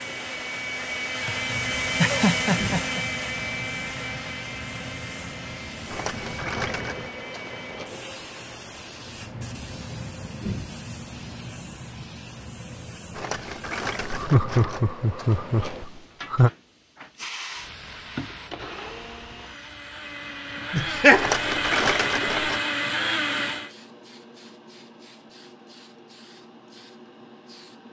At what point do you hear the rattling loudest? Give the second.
22 s.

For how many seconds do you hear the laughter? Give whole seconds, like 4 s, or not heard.
5 s.